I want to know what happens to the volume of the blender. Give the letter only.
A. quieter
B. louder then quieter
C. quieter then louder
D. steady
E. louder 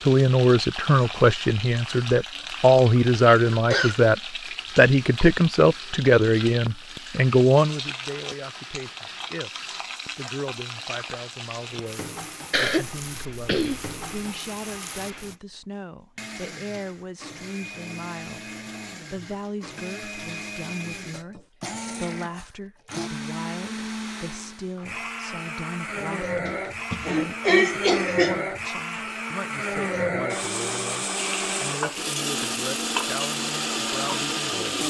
E.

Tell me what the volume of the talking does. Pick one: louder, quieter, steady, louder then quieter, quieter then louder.
quieter.